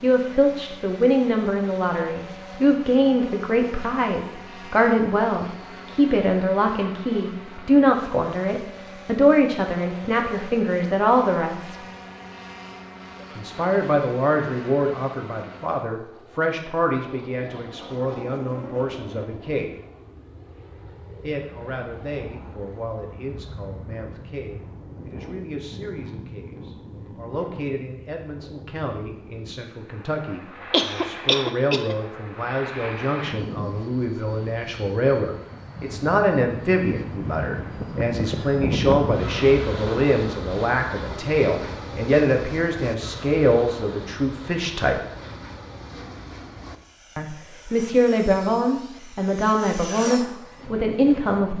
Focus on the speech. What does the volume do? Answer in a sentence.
The volume of the speech goes down, then up.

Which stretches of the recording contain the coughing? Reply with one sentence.
The coughing can be heard from 30.7 to 31.9 s.